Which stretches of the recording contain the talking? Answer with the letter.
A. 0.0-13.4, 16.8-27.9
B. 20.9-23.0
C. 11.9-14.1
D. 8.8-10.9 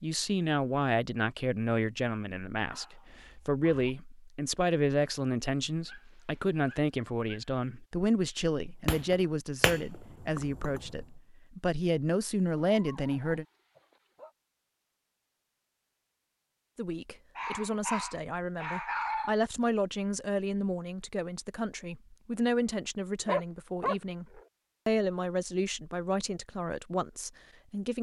A.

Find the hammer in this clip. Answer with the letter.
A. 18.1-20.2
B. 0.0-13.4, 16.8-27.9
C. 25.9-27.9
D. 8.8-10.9
D.